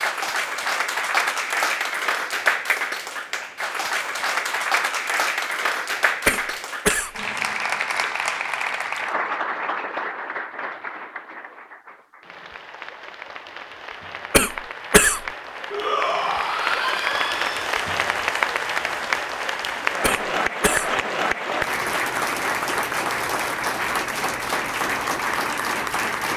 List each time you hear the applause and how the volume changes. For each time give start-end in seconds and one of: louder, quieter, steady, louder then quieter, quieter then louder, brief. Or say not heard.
0.0-26.3 quieter then louder.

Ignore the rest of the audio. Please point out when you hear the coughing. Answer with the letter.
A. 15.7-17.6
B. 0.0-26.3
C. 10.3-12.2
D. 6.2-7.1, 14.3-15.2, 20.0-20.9
D.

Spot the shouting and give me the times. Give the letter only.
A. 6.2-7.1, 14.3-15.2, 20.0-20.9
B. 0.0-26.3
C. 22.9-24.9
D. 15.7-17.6
D.